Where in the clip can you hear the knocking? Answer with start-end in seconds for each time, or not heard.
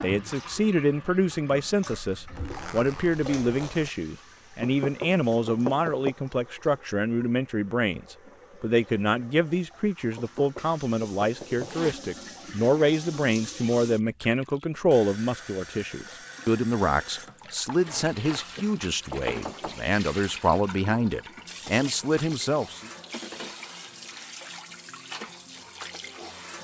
4.6-6.1, 10.2-11.7, 19.1-19.9.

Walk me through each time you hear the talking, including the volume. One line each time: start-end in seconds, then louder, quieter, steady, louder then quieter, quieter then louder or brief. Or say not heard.
0.0-22.9 steady.